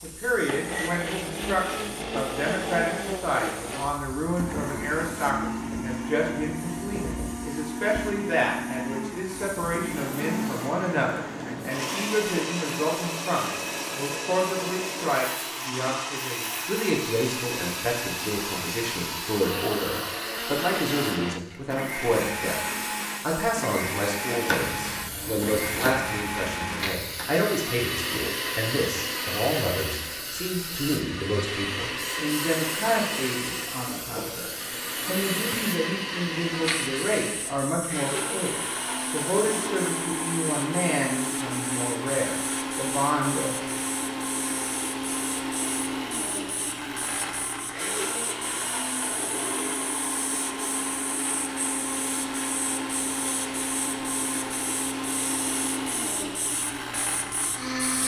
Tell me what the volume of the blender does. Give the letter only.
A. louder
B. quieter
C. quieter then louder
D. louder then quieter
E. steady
E.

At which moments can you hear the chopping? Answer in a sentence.
The chopping can be heard from 24.4 to 27.3 s.